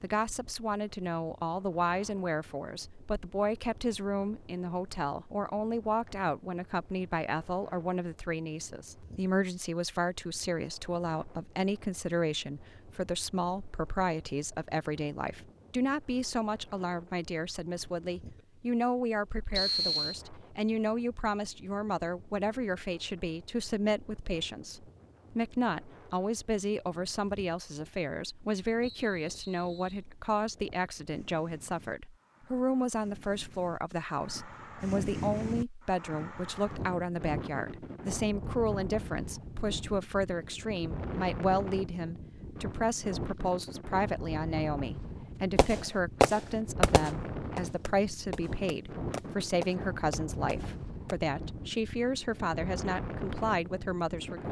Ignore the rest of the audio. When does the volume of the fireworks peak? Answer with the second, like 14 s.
46 s.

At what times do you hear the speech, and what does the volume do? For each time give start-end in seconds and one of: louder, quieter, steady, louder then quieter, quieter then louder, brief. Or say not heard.
0.0-54.4 steady.